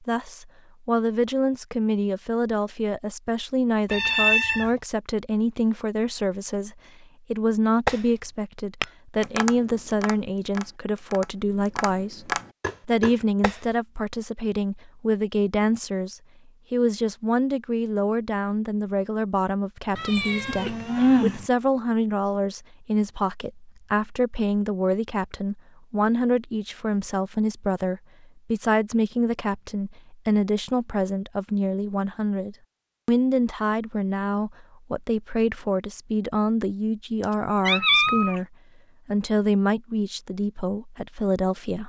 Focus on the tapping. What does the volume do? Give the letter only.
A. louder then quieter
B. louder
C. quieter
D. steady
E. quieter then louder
E.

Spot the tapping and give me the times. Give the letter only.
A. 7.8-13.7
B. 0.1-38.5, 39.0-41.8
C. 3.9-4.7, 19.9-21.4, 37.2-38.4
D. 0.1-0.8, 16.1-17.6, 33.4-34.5
A.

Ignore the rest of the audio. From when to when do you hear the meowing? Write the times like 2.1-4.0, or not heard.
3.9-4.7, 19.9-21.4, 37.2-38.4.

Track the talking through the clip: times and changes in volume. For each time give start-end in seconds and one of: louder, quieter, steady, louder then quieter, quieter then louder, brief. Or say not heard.
0.1-38.5 steady
39.0-41.8 brief.